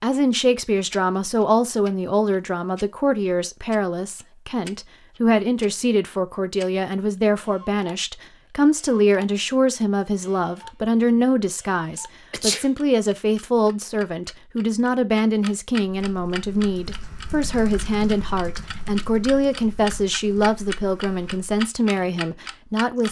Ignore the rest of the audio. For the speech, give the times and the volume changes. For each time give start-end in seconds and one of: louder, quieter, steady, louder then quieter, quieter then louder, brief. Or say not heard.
0.0-23.0 steady.